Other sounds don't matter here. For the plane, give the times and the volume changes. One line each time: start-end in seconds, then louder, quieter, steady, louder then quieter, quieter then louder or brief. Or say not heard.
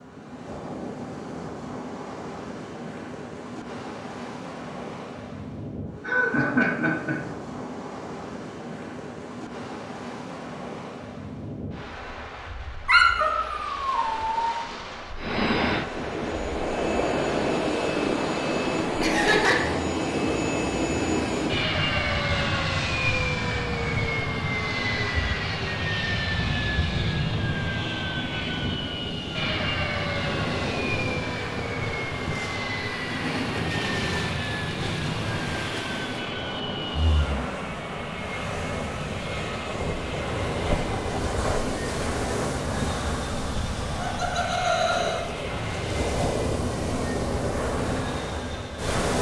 15.2-49.0 quieter.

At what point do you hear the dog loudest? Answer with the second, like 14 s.
13 s.